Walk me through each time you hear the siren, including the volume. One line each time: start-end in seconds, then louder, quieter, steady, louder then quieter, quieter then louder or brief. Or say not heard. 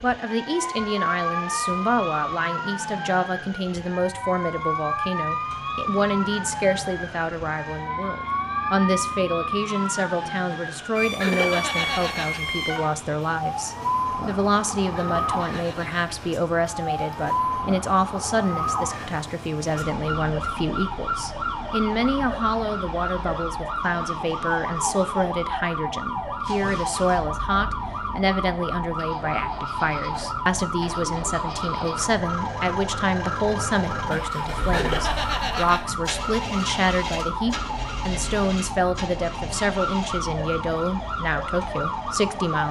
0.0-42.6 steady.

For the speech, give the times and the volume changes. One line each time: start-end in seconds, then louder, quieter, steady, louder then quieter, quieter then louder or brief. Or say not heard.
0.0-42.6 steady.